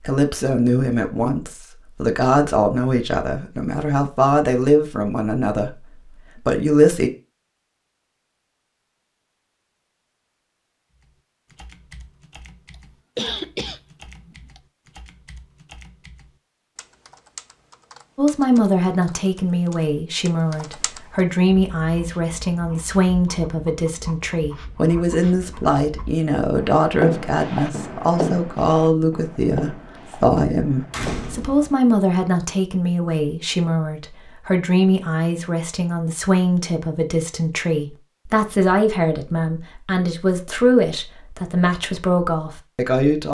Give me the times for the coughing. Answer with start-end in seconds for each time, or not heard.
12.7-14.6.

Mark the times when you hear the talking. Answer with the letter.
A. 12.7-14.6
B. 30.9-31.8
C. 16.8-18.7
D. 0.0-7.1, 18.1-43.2
D.